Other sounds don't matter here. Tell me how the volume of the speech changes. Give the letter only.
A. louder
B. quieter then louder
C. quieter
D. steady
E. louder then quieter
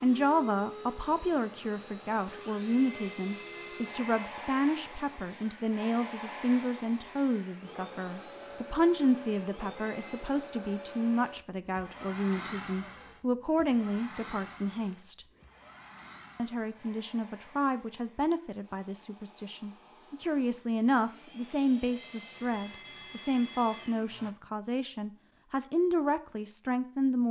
D.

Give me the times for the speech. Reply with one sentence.
The speech can be heard from 0.0 to 15.2 s and from 16.4 to 27.2 s.